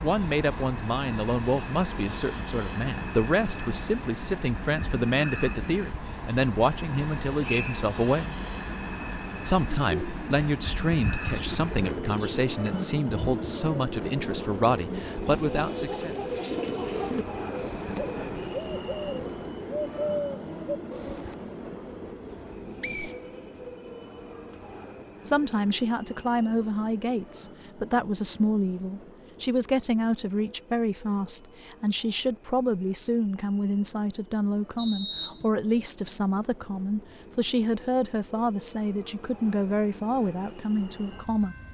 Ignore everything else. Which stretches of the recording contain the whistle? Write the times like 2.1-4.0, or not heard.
7.4-7.8, 22.8-23.9, 34.8-35.5.